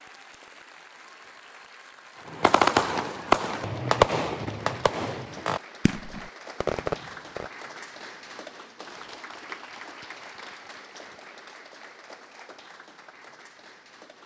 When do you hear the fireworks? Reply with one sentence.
You can hear the fireworks from 2.2 to 7.5 s.